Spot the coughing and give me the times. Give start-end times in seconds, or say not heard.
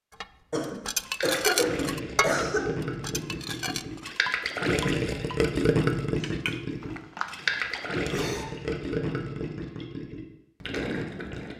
0.5-2.6, 7.2-8.4.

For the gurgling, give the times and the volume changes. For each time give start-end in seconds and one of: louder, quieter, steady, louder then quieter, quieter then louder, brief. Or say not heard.
1.1-11.5 louder then quieter.